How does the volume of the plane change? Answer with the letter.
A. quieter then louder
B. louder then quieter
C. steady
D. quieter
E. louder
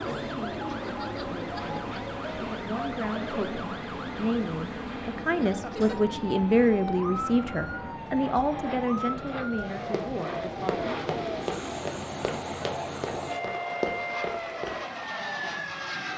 C.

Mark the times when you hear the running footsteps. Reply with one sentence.
You can hear the running footsteps from 9.8 to 14.8 s.